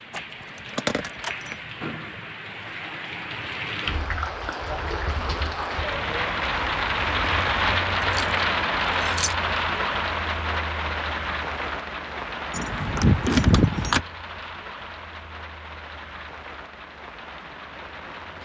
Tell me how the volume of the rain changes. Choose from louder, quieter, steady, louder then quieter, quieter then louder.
louder then quieter.